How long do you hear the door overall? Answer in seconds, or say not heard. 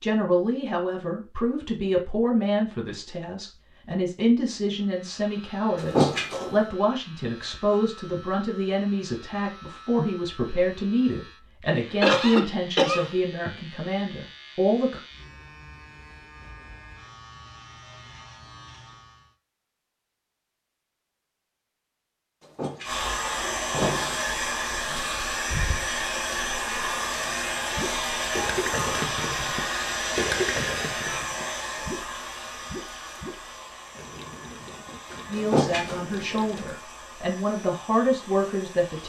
3 s.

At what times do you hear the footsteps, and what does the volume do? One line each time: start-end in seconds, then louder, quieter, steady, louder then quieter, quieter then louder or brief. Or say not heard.
not heard.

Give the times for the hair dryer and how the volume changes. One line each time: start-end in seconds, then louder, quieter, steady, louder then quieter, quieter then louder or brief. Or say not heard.
22.8-39.0 quieter.